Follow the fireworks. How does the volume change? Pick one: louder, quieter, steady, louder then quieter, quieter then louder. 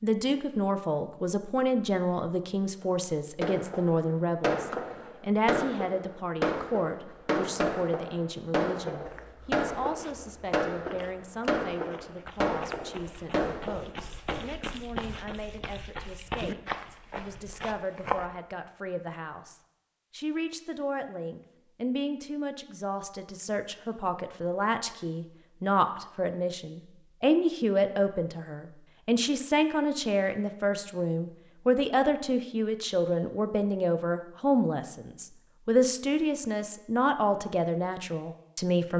steady.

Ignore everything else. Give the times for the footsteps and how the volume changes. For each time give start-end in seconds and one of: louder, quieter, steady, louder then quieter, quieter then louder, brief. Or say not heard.
9.1-18.3 louder.